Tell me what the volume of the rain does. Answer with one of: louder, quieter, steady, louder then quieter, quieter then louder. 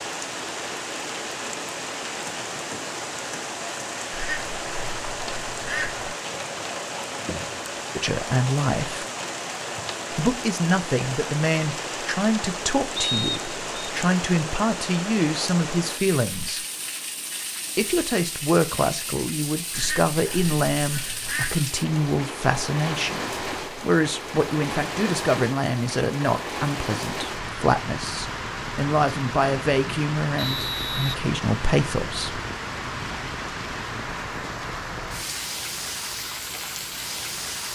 steady.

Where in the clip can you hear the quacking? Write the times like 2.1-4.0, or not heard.
4.1-6.2, 19.7-21.6.